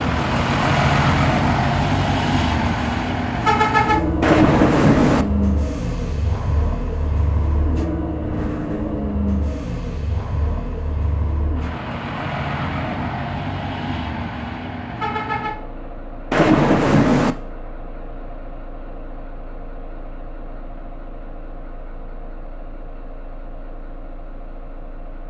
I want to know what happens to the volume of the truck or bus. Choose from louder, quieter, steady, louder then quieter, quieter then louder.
quieter.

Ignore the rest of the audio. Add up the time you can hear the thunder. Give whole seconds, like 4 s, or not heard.
2 s.